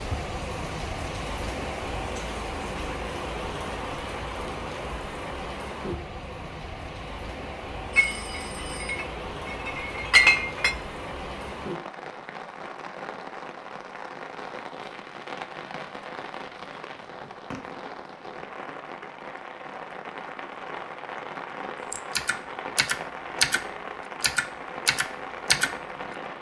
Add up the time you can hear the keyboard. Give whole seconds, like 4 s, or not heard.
4 s.